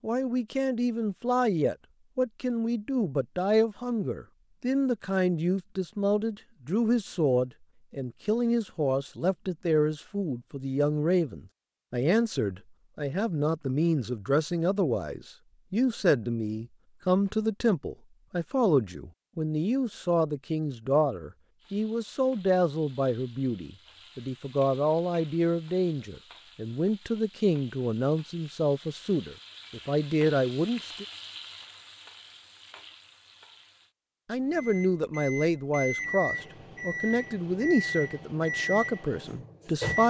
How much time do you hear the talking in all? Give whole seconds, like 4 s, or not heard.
37 s.